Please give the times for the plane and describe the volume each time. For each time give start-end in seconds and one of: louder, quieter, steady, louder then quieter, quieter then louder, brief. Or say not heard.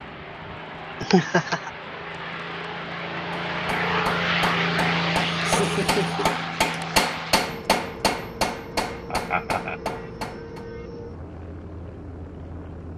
0.0-12.9 louder then quieter.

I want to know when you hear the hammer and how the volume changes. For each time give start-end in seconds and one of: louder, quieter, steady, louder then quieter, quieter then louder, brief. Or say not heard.
3.5-10.7 louder then quieter.